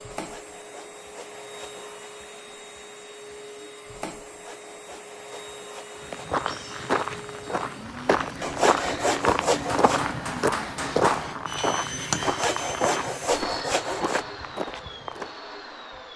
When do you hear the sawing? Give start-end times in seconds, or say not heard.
0.1-1.9, 4.2-6.0, 8.4-10.0, 12.2-14.2.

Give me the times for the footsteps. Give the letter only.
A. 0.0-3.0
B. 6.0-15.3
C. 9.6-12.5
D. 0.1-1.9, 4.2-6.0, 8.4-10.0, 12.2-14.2
B.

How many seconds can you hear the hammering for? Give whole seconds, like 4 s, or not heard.
3 s.